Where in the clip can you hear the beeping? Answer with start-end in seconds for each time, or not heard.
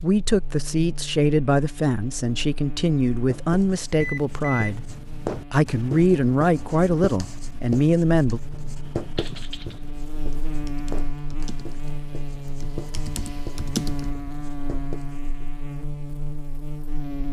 4.0-4.8.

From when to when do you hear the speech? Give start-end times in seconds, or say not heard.
0.0-4.8, 5.5-8.4.